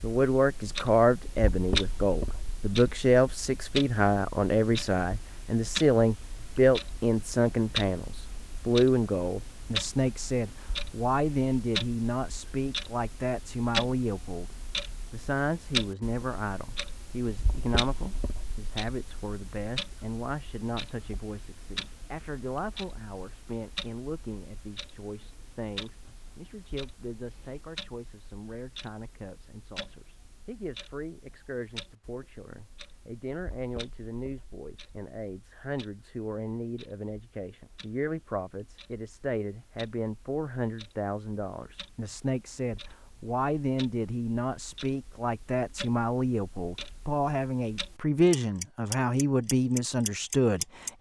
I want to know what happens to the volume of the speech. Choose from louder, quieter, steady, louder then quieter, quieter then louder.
quieter then louder.